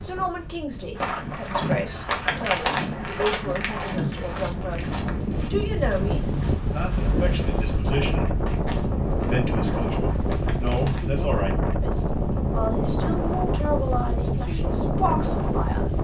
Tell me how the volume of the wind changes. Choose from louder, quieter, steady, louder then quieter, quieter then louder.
louder.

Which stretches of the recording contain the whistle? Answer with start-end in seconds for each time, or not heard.
not heard.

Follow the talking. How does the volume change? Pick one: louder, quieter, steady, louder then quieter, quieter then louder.
steady.